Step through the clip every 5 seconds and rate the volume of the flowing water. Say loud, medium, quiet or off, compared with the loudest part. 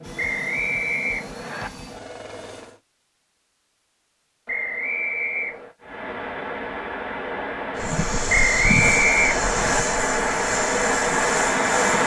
off, medium, loud.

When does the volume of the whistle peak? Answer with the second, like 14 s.
9 s.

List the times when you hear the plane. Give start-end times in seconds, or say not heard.
0.0-2.8, 7.8-12.0.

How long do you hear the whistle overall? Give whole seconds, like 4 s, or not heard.
4 s.